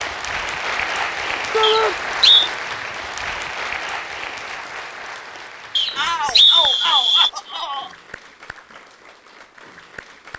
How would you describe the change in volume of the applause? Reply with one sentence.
The loudness of the applause goes down.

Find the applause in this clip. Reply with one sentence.
The applause can be heard from 0.0 to 10.3 s.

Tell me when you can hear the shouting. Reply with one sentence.
You can hear the shouting from 1.5 to 1.9 s and from 6.0 to 8.0 s.